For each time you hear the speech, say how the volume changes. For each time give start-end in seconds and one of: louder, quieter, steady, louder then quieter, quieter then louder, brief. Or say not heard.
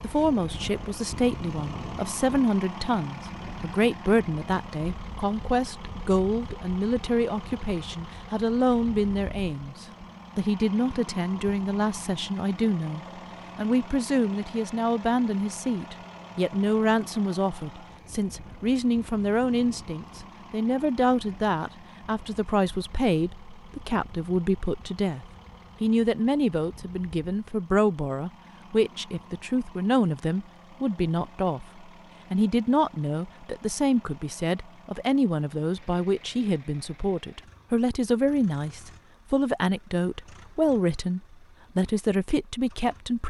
0.0-43.2 steady.